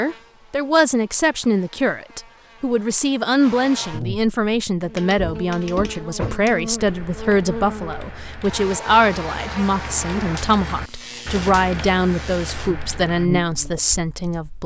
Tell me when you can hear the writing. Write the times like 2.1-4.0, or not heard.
not heard.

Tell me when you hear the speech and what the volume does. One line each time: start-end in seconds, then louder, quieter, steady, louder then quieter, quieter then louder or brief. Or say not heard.
0.0-14.6 steady.